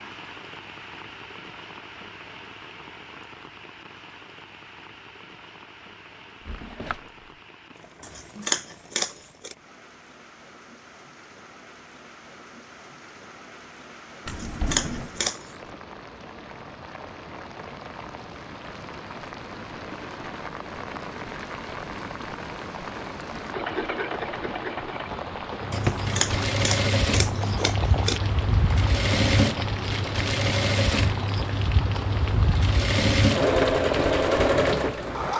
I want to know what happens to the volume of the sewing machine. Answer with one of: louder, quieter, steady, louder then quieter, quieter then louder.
louder.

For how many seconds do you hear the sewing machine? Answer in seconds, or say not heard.
12 s.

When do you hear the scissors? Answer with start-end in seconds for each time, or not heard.
8.0-9.6, 14.2-15.5, 25.7-28.2.